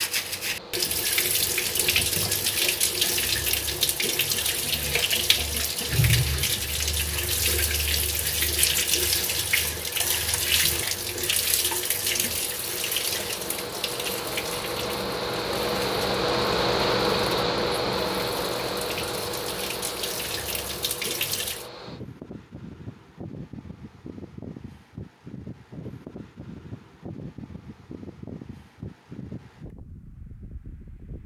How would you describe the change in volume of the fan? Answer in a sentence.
The loudness of the fan goes up, then down.